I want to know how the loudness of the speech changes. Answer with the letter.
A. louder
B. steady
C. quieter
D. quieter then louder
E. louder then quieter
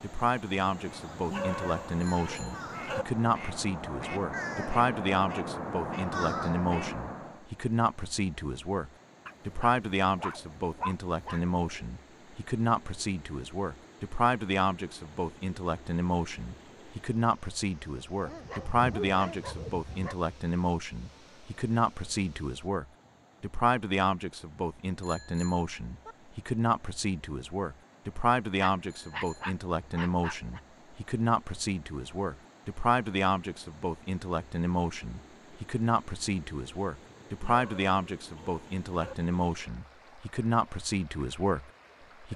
B.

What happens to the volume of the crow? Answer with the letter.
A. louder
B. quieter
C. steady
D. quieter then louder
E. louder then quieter
A.